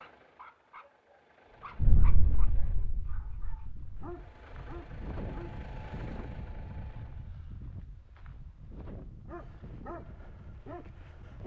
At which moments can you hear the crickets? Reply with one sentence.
You can't hear the crickets here.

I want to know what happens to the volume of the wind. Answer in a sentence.
The loudness of the wind goes up, then down.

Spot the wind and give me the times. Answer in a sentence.
The wind can be heard from 1.5 to 11.4 s.